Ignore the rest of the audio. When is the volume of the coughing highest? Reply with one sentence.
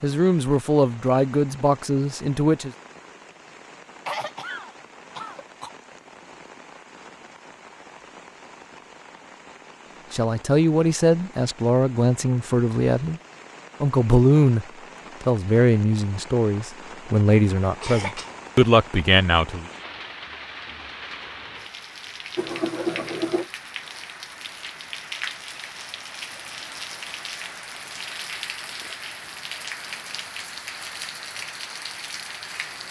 The loudest moment of the coughing is at 23 seconds.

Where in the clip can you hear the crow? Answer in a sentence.
You can't hear the crow here.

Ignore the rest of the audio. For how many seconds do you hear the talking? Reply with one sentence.
You can hear the talking for 12 seconds altogether.